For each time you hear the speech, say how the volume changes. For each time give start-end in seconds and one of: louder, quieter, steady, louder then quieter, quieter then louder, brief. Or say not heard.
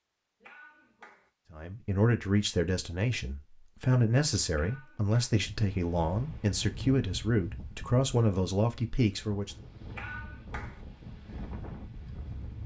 1.5-9.6 steady.